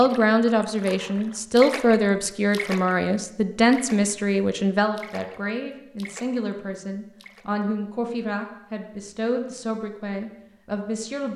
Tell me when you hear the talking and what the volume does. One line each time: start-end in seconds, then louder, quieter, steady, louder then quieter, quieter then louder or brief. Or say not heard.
0.0-11.3 quieter.